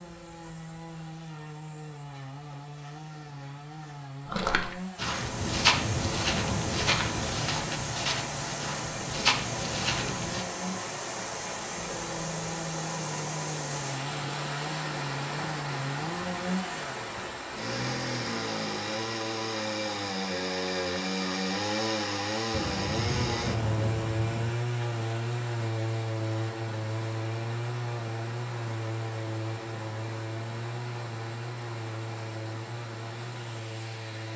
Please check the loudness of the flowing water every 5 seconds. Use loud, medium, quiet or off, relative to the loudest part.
off, loud, loud, loud, medium, medium, medium.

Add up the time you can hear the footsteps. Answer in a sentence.
You can hear the footsteps for 6 seconds altogether.